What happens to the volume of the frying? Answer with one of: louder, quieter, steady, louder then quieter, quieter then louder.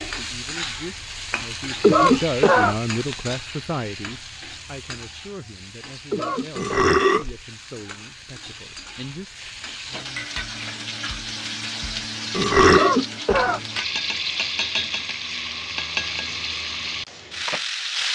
quieter then louder.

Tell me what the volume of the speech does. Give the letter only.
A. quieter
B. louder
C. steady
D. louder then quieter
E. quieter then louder
D.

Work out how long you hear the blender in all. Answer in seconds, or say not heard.
not heard.